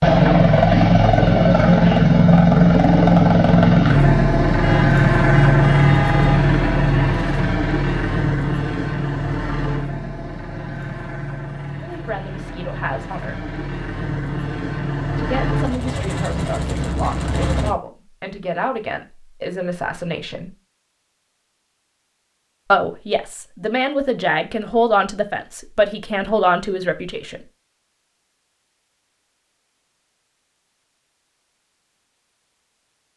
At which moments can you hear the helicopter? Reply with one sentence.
You can hear the helicopter from 0.0 to 17.7 s.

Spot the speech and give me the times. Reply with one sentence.
You can hear the speech from 11.8 to 13.4 s, from 15.2 to 20.5 s and from 22.7 to 27.4 s.